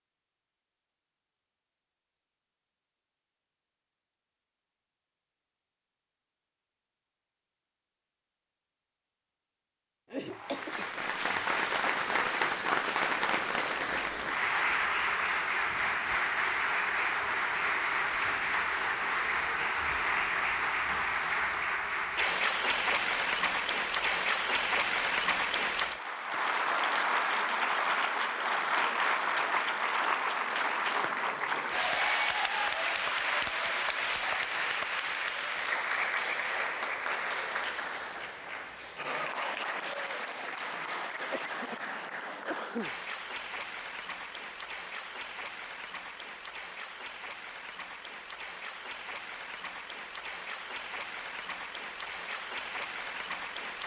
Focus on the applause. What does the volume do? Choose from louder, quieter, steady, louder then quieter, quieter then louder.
quieter.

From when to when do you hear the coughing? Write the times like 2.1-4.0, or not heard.
10.1-10.9, 41.2-42.9.